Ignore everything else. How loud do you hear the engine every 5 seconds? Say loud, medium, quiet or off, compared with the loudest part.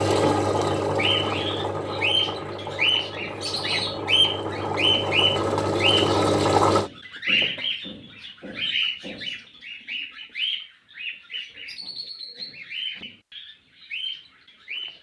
medium, loud, off.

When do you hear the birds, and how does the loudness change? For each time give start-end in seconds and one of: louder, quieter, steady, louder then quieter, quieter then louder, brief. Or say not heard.
0.0-14.9 quieter.